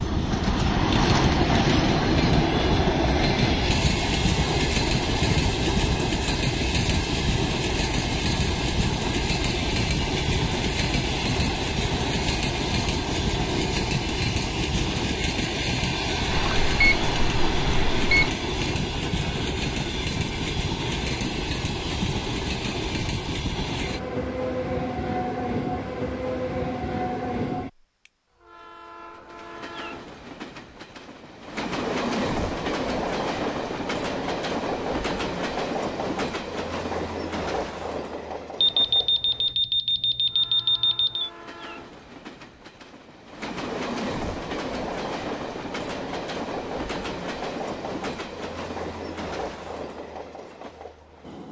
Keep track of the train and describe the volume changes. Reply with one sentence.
The volume of the train goes down.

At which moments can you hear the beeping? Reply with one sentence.
You can hear the beeping from 16.3 to 18.3 s and from 38.6 to 41.3 s.